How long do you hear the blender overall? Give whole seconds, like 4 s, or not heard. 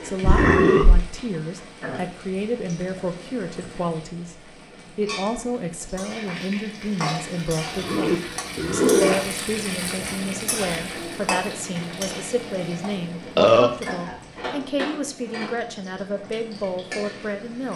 not heard.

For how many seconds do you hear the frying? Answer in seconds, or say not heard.
18 s.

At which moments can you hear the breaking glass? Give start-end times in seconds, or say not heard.
not heard.